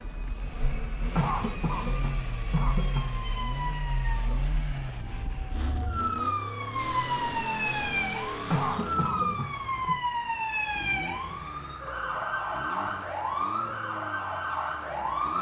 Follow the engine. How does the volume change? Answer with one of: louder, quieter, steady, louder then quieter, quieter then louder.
quieter.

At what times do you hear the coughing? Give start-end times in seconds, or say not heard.
1.1-3.0, 8.5-9.9.